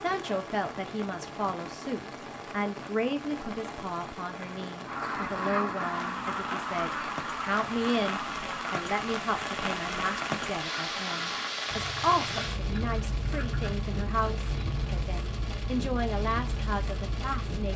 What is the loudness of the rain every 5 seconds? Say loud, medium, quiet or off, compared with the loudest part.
medium, loud, loud, loud.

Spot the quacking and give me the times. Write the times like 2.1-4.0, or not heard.
4.8-15.1.